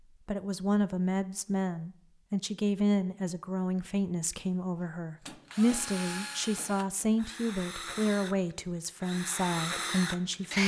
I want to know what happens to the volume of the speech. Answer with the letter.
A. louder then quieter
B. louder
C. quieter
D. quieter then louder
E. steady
E.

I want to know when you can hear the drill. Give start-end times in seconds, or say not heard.
5.2-10.6.